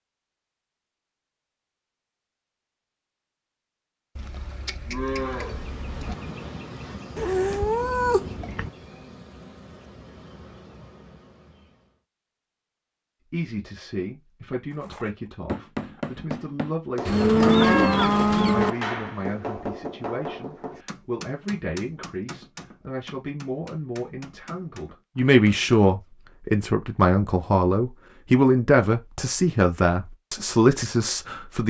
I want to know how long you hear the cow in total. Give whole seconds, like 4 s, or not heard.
4 s.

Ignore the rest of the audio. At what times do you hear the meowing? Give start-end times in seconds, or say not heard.
7.2-8.7.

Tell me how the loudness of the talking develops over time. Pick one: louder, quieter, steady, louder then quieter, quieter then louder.
louder.